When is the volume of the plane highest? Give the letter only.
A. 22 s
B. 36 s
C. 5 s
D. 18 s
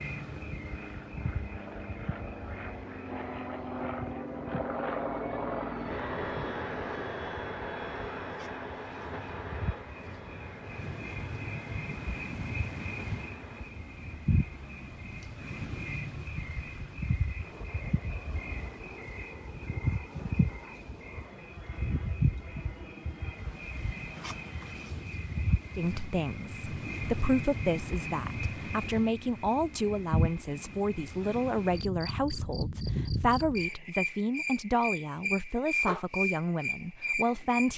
C.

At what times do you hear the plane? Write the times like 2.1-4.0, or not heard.
0.0-25.1.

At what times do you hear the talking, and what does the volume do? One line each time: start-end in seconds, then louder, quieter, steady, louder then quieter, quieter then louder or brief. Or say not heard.
25.8-37.7 steady.